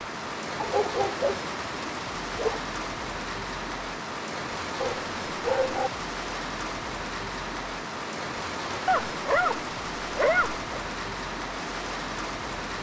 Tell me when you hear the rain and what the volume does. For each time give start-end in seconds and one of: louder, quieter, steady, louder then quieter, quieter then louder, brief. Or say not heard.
0.0-12.7 steady.